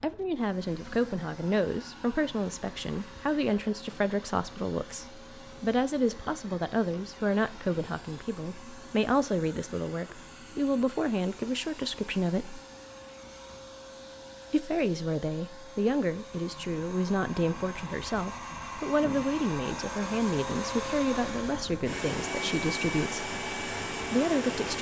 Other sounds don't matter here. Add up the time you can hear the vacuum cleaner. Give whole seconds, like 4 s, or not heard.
25 s.